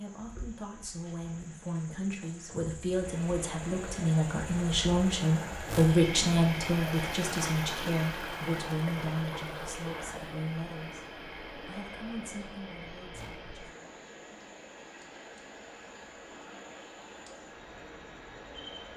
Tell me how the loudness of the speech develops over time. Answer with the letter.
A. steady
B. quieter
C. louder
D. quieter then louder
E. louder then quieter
E.